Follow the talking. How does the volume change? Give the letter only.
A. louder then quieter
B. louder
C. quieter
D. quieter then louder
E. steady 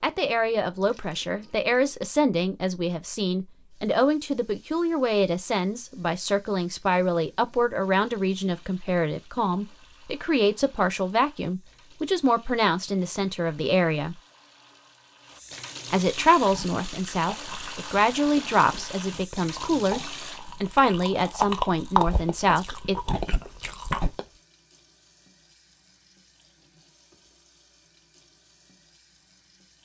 E.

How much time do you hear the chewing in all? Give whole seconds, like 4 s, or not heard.
8 s.